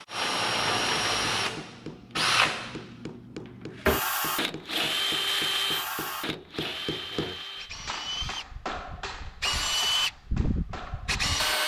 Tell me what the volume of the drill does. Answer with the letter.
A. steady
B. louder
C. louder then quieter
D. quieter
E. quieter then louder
E.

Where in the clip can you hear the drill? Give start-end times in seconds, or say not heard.
0.0-11.6.